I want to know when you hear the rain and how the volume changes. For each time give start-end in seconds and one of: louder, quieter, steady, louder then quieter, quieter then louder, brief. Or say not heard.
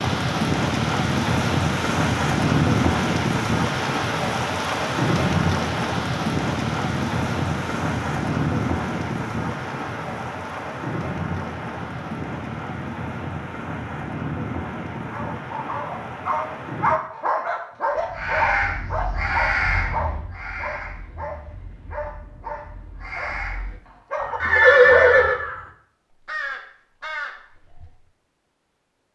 0.0-16.9 quieter.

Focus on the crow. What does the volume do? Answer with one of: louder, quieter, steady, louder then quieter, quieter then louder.
quieter then louder.